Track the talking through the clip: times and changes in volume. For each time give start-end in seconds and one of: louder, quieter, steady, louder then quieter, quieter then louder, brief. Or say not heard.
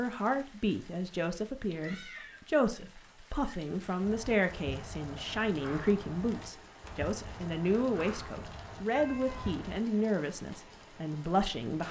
0.0-11.8 steady.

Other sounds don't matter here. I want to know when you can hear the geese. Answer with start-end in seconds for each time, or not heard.
not heard.